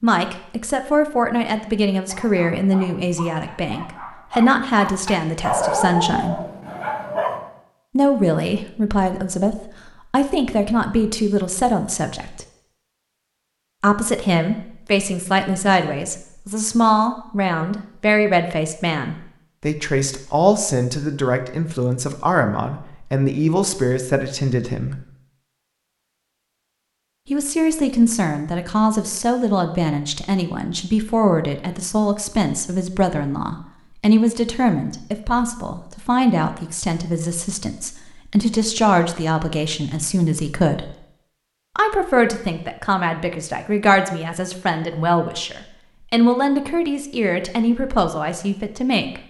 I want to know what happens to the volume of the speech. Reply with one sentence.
The volume of the speech stays about the same.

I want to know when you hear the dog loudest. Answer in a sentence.
The loudest moment of the dog is at 6 seconds.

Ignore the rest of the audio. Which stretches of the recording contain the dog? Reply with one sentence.
You can hear the dog from 2.0 to 7.5 s.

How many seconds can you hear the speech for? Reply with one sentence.
You can hear the speech for 43 seconds altogether.